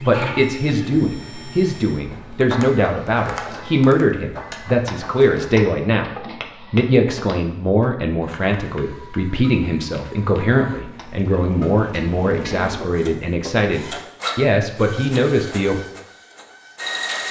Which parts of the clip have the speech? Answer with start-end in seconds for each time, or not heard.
0.0-6.1, 6.7-15.8.